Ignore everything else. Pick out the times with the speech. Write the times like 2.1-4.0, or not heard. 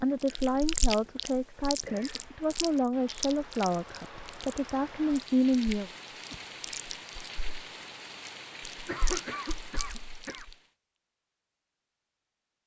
0.0-5.9.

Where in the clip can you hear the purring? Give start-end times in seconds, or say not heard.
not heard.